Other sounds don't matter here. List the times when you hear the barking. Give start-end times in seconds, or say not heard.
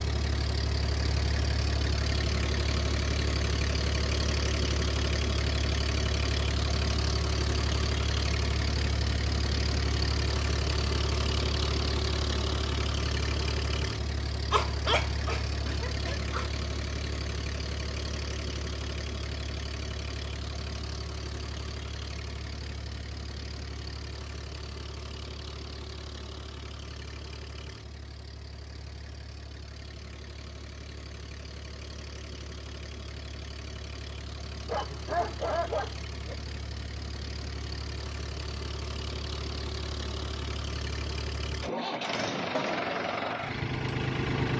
14.5-16.5, 34.6-36.4.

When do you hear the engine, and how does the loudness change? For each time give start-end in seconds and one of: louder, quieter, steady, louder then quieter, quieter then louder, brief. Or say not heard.
0.0-44.5 quieter then louder.